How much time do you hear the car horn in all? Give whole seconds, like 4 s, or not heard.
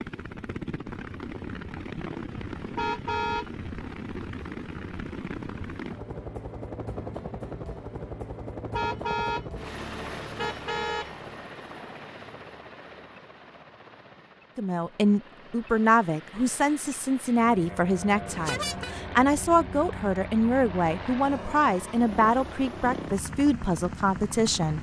3 s.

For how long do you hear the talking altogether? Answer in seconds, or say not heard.
10 s.